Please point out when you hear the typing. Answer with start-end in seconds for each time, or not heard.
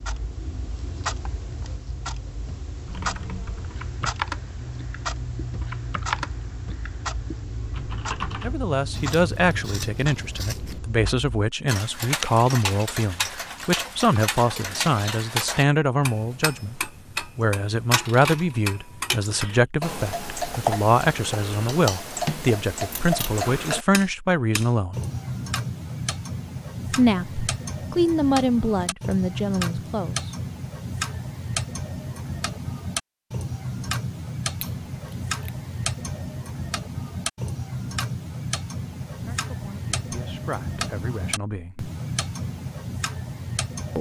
2.9-8.6.